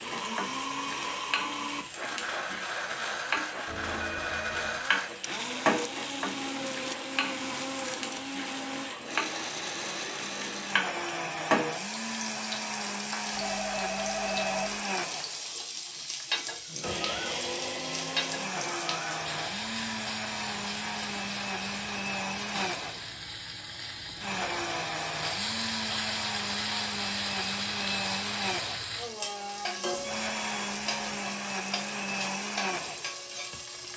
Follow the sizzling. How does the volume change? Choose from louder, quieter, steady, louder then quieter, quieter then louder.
steady.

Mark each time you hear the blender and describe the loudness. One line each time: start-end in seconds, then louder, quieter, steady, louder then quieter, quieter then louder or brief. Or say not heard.
0.0-33.9 steady.